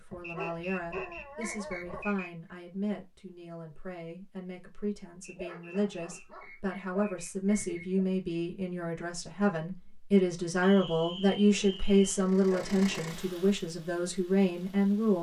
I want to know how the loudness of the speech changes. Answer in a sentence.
The volume of the speech goes up.